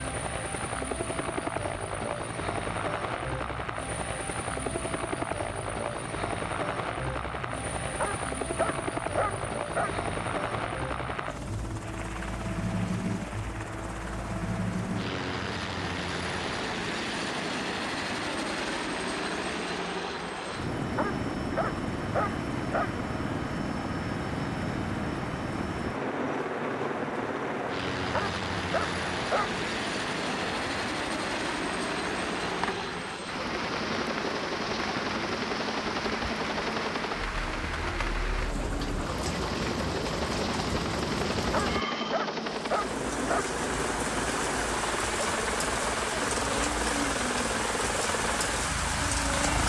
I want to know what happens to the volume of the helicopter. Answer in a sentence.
The loudness of the helicopter stays about the same.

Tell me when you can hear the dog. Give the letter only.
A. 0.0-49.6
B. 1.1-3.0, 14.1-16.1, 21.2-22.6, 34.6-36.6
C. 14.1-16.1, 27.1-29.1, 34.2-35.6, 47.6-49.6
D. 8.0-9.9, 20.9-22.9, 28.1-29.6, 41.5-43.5
D.